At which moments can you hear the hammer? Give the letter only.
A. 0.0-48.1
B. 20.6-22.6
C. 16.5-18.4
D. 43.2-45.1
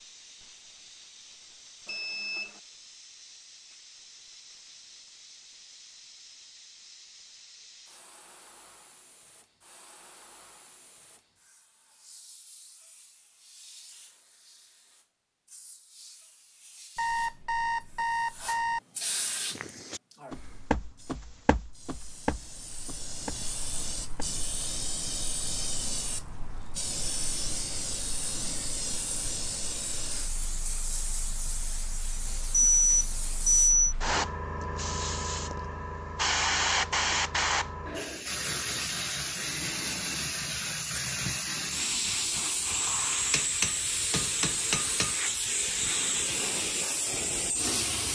D.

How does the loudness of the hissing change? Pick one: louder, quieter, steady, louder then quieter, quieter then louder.
louder.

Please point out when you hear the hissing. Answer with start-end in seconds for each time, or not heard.
0.0-48.1.